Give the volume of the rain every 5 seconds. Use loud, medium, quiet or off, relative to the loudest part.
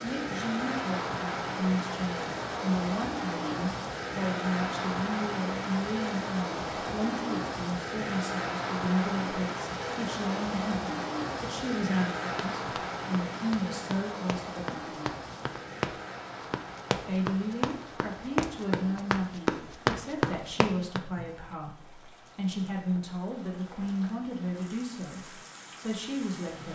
loud, loud, loud, medium, quiet, quiet.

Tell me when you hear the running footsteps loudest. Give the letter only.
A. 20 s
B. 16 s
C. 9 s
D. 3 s
A.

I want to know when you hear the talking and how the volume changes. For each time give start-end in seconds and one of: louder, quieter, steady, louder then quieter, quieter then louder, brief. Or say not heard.
0.0-15.1 steady
17.1-26.7 steady.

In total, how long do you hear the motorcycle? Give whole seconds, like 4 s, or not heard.
not heard.